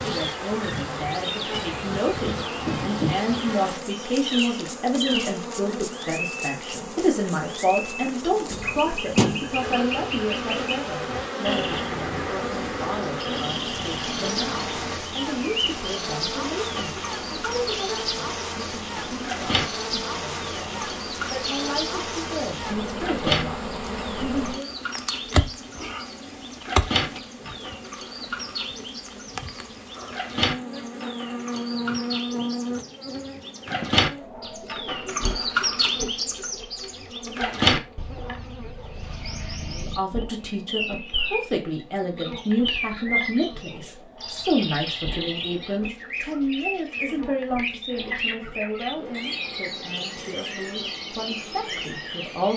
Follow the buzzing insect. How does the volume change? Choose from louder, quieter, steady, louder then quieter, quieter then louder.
quieter.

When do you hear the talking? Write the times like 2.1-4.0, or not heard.
0.0-24.7, 39.7-52.5.